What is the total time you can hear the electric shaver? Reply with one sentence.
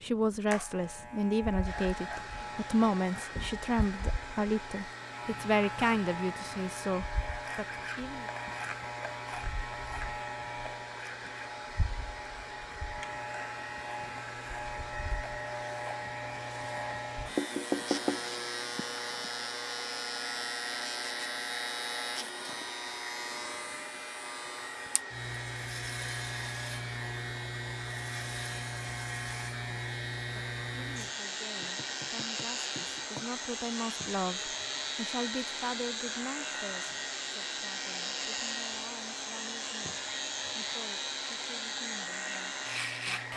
You can hear the electric shaver for 43 seconds altogether.